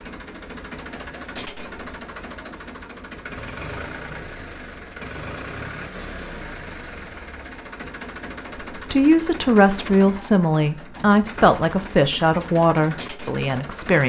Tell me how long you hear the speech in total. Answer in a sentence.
The speech can be heard for 5 seconds in total.